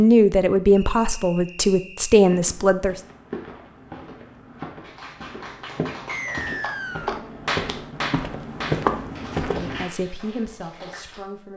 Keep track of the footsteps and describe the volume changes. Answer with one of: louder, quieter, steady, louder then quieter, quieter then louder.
louder.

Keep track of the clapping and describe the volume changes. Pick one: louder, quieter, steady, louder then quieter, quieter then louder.
louder then quieter.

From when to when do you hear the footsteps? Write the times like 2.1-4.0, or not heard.
2.1-9.8.